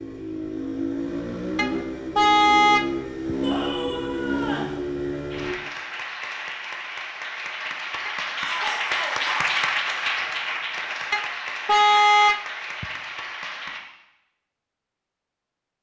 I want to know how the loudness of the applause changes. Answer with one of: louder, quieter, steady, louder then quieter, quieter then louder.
louder then quieter.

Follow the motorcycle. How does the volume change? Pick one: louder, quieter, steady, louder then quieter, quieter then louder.
steady.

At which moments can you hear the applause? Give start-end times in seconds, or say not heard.
5.3-13.8.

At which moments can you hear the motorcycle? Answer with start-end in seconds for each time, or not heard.
0.0-5.5.